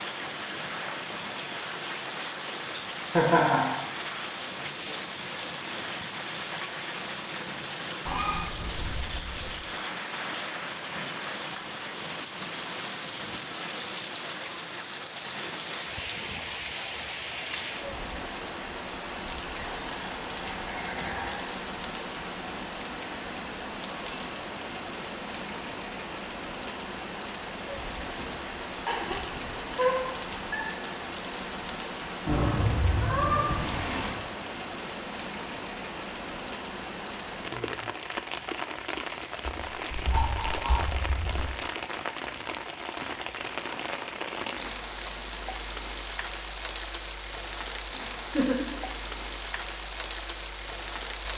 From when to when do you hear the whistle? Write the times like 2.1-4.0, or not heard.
not heard.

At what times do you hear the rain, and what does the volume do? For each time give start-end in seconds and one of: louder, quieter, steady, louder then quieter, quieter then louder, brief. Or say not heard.
0.0-51.3 steady.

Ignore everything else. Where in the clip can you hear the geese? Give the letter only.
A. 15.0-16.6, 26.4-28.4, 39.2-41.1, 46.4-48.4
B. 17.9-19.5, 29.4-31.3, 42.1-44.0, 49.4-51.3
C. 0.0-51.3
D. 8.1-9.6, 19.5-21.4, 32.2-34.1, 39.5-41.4
D.